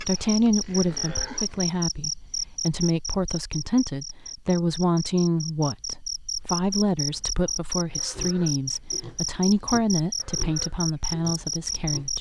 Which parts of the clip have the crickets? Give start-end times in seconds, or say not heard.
0.0-12.1.